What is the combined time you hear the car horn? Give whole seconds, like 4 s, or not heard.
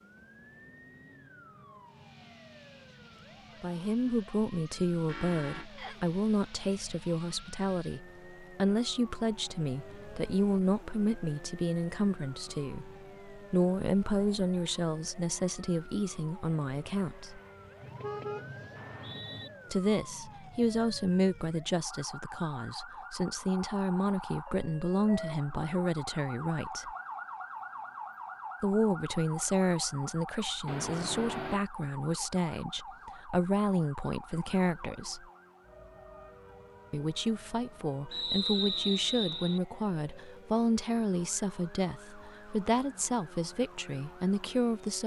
3 s.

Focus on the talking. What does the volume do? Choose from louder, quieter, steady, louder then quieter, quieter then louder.
steady.